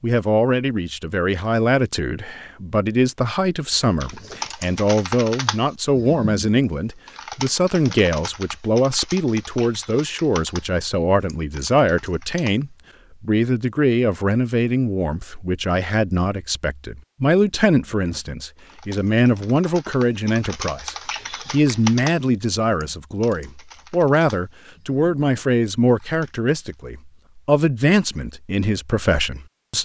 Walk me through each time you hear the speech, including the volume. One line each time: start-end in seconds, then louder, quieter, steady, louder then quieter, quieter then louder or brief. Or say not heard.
0.0-29.8 steady.